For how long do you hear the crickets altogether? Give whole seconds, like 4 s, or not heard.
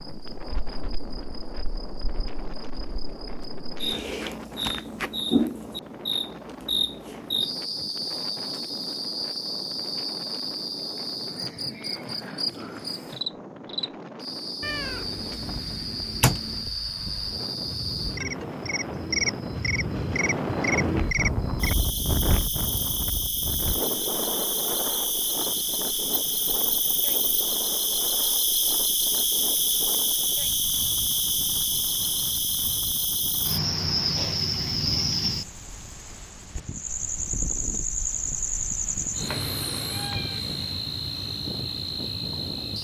43 s.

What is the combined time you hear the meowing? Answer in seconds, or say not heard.
3 s.